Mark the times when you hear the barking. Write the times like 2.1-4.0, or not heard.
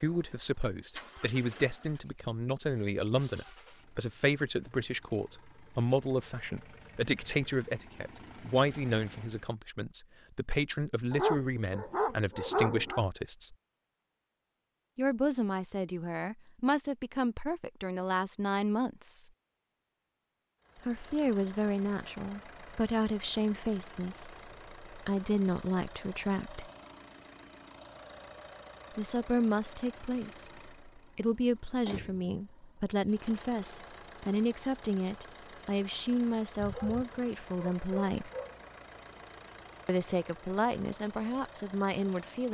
11.1-13.0, 36.5-38.6.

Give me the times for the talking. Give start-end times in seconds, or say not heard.
0.0-13.6, 14.9-19.3, 20.9-26.7, 28.9-38.3, 39.9-42.4.